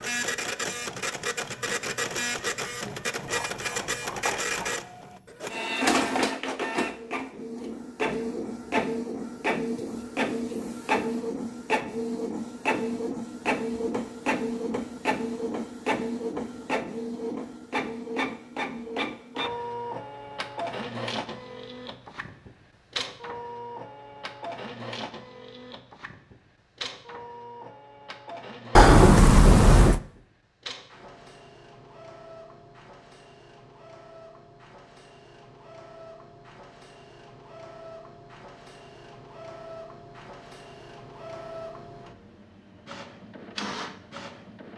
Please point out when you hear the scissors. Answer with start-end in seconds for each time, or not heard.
3.2-4.8, 28.8-30.0.